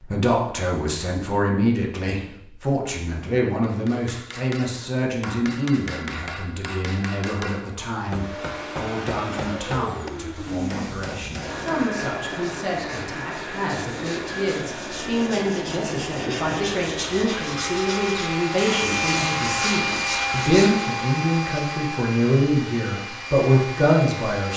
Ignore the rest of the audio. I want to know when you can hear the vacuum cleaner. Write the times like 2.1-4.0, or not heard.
8.0-24.5.